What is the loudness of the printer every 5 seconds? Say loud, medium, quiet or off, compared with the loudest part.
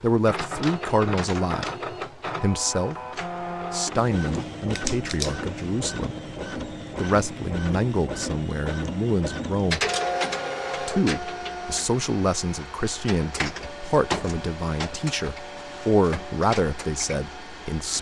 loud, loud, loud, medium.